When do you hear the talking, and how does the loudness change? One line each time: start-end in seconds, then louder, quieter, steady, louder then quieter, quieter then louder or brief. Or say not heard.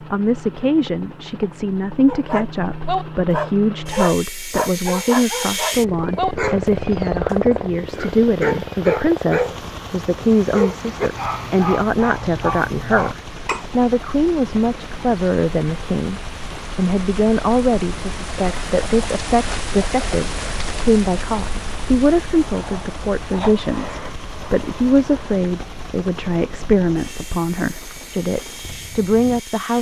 0.1-29.7 steady.